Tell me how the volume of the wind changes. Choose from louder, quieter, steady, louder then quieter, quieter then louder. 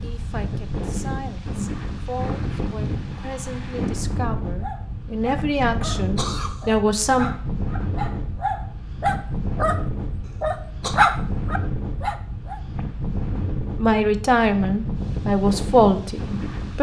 steady.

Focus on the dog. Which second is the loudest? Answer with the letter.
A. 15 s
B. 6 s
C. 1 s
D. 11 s
D.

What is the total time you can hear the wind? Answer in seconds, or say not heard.
17 s.